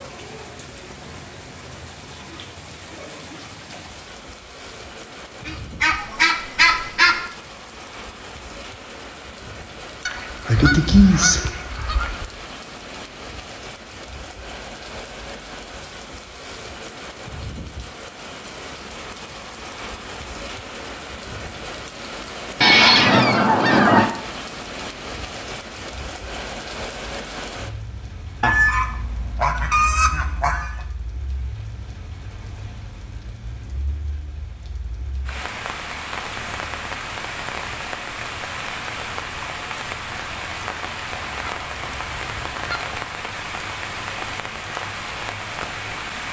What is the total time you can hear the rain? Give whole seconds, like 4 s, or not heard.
46 s.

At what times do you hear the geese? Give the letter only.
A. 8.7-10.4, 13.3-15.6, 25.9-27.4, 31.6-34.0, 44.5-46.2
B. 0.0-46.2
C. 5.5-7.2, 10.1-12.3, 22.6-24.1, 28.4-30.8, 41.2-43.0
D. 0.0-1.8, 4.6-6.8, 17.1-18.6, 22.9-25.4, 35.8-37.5
C.